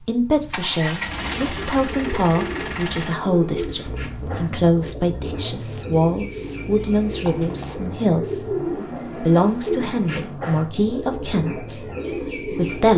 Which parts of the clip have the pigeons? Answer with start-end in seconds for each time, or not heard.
1.2-12.9.